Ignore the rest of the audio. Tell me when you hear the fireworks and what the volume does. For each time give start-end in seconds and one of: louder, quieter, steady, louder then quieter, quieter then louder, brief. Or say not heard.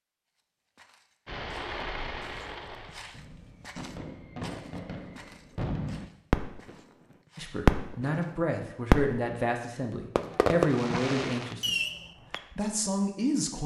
1.2-6.8 quieter then louder
7.7-8.2 brief
8.9-9.4 brief
10.2-12.4 brief.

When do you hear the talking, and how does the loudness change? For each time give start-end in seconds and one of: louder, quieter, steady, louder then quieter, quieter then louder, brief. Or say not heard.
7.3-11.8 steady
12.5-13.6 brief.